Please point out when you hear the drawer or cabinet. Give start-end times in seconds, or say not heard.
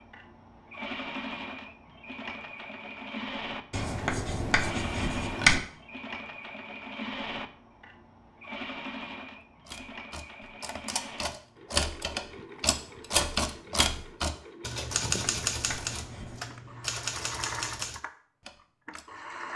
not heard.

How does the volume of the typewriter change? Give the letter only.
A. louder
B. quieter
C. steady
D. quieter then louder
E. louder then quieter
E.